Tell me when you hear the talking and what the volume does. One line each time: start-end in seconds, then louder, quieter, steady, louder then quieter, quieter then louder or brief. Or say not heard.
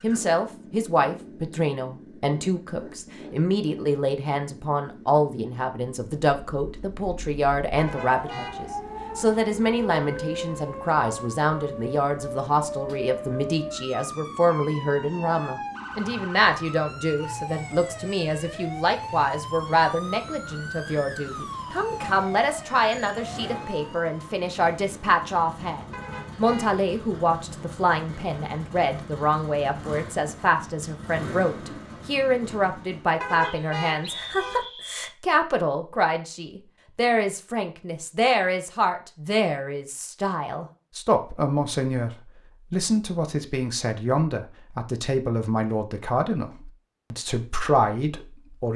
0.0-48.7 steady.